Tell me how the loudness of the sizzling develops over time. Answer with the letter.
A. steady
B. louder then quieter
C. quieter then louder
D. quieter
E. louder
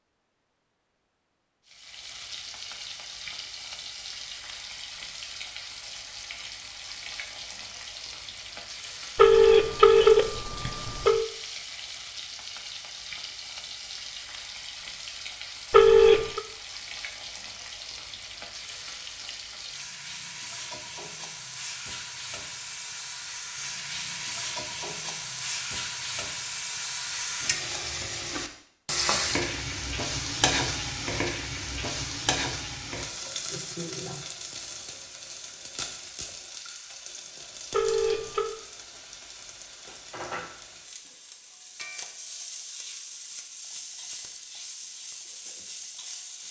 B.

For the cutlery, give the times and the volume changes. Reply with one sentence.
You can't hear the cutlery here.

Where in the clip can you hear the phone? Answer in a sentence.
The phone can be heard from 9.2 to 11.2 s, from 15.7 to 16.4 s and from 37.7 to 38.5 s.